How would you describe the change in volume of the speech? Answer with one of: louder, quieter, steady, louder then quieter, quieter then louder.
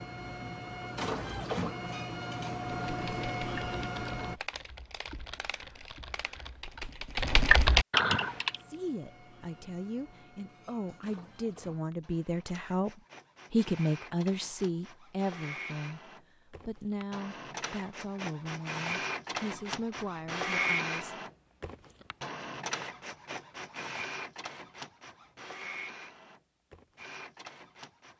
louder then quieter.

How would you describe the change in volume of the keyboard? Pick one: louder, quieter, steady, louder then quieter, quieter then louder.
louder.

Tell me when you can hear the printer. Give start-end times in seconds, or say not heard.
0.0-4.4, 8.2-28.1.